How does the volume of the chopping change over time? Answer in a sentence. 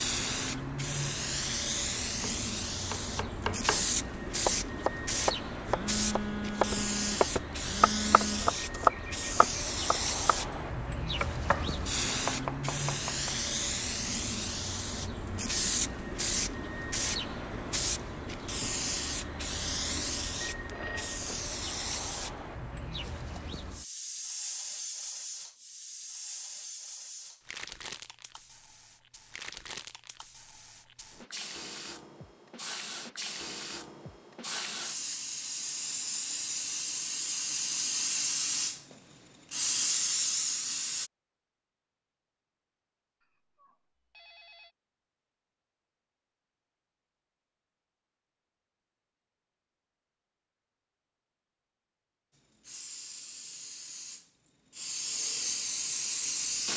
The volume of the chopping goes up, then down.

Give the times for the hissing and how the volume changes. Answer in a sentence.
You can hear the hissing from 0.0 to 41.1 s, getting quieter then louder; and from 52.4 to 56.7 s, getting louder.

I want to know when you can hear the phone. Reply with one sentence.
You can hear the phone from 5.7 to 8.5 s, from 20.4 to 21.5 s and from 43.2 to 44.8 s.